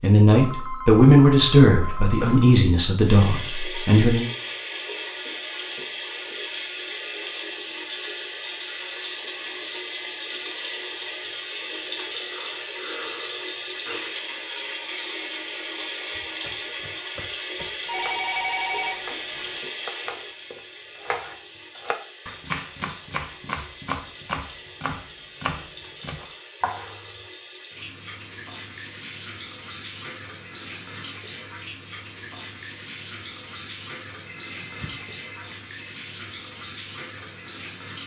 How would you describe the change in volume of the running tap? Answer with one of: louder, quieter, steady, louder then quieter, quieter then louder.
quieter.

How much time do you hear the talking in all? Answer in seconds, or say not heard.
4 s.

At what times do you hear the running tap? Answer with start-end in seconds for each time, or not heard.
3.0-38.0.